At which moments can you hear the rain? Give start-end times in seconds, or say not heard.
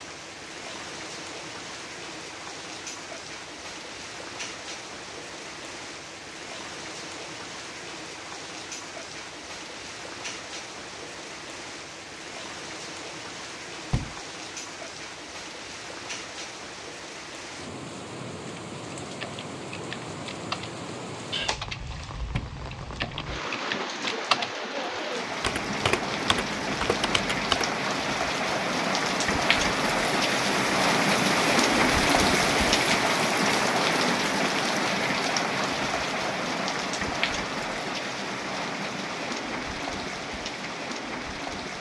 0.0-41.7.